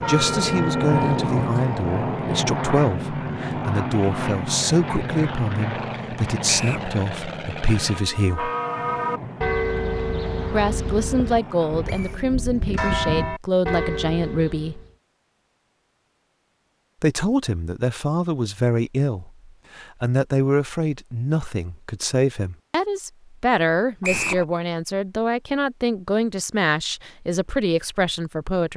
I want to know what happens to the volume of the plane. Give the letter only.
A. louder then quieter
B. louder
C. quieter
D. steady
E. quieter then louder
C.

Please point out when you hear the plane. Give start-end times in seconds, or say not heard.
0.0-12.2.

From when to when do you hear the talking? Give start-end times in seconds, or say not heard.
0.1-8.5, 10.5-14.8, 17.0-28.7.